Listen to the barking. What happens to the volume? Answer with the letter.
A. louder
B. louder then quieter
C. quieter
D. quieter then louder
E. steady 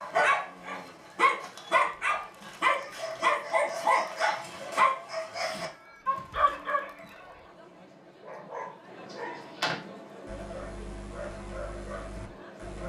C.